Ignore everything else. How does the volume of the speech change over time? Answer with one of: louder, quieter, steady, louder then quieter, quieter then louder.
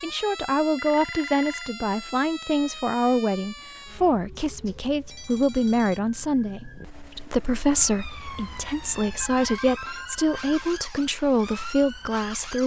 steady.